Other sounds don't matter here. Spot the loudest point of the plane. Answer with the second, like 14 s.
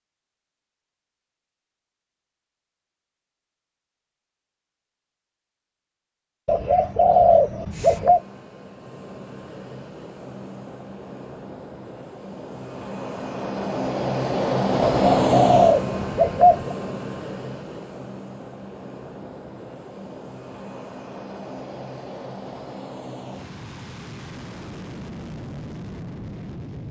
15 s.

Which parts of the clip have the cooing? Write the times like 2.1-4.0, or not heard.
6.5-8.2, 14.8-16.8.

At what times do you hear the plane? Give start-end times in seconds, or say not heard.
7.7-26.8.